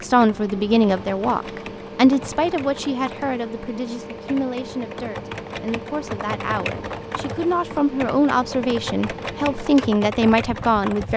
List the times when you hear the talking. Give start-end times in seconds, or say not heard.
0.0-11.1.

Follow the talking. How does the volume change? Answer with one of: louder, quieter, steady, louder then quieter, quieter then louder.
quieter then louder.